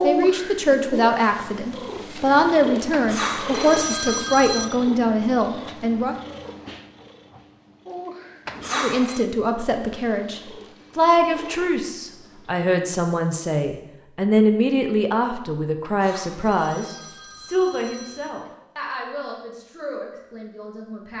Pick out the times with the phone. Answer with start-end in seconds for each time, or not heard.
2.9-4.7, 8.4-9.2, 15.8-18.5.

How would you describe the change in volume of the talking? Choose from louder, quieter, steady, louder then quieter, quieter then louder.
quieter.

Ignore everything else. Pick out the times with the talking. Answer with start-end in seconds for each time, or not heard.
0.0-6.2, 8.7-21.1.